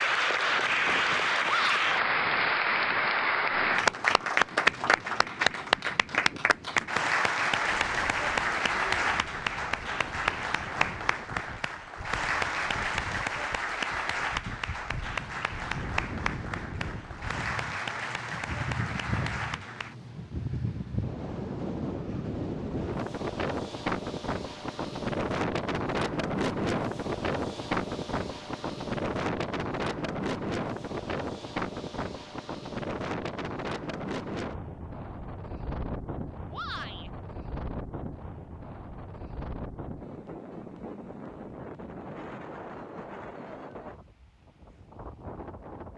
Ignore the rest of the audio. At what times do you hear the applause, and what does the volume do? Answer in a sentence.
You can hear the applause from 0.0 to 19.9 s, getting quieter.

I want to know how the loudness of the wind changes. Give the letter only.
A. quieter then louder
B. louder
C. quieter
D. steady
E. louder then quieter
E.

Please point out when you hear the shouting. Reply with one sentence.
You can hear the shouting from 1.4 to 1.9 s and from 36.5 to 37.1 s.